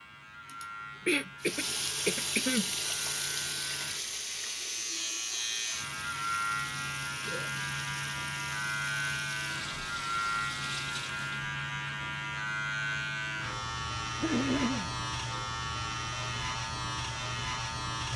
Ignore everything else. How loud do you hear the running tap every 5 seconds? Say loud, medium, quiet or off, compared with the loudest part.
loud, medium, medium, off.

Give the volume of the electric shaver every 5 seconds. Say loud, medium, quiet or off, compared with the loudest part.
medium, loud, loud, loud.